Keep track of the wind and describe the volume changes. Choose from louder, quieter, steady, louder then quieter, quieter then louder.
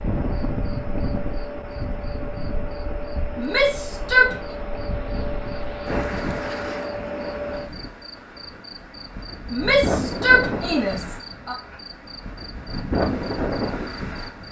quieter then louder.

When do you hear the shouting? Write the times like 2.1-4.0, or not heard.
3.4-4.3, 9.5-11.6.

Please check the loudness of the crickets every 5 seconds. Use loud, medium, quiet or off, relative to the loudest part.
loud, loud, medium.